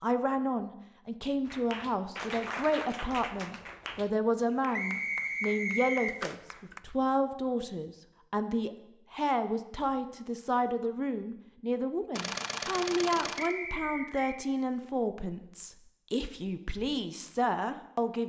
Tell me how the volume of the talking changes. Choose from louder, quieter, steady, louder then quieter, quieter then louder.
steady.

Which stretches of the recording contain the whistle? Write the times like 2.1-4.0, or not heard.
4.7-6.2, 13.3-14.4.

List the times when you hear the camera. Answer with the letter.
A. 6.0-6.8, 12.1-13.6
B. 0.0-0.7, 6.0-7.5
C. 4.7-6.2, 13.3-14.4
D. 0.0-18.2
A.